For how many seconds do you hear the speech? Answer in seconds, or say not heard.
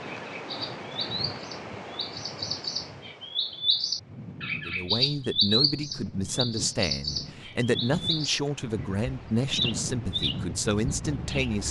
7 s.